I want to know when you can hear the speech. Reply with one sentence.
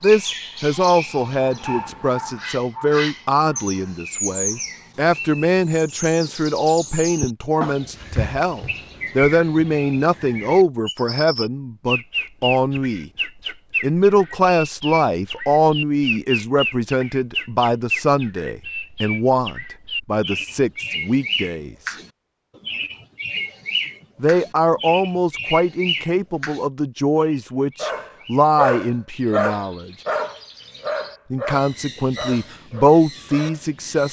The speech can be heard from 0.0 to 13.1 s, from 13.8 to 21.9 s, from 24.2 to 29.9 s and from 31.3 to 34.0 s.